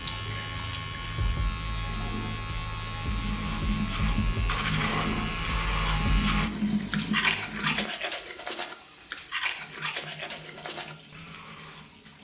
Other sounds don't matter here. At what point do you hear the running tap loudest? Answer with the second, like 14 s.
7 s.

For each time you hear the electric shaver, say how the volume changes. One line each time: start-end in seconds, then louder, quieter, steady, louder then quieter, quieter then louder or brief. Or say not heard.
0.0-6.5 steady.